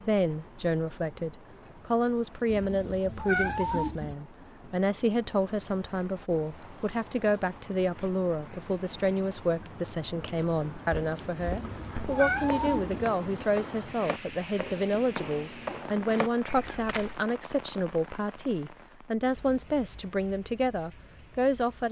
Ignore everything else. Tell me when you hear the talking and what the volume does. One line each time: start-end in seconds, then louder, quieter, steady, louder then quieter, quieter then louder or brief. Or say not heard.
0.0-21.8 steady.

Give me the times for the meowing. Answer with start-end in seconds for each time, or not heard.
2.5-4.2, 11.4-13.1.